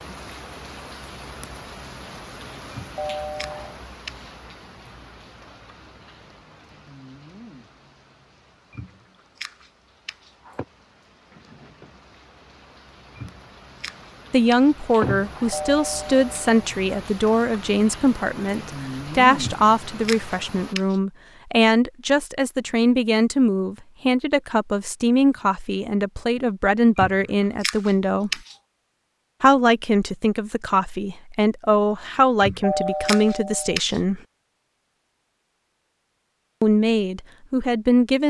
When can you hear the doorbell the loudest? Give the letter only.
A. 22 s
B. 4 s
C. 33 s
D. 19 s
C.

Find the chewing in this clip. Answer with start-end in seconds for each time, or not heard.
2.7-4.3, 8.7-10.7, 13.2-15.3, 19.4-20.9, 26.9-28.6, 32.4-34.0.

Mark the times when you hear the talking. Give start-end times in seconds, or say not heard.
14.3-28.4, 29.4-34.2, 36.6-38.2.